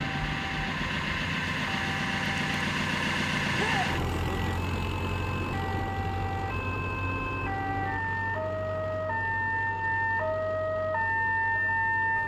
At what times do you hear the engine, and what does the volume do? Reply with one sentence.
You can hear the engine from 0.0 to 12.2 s, getting quieter.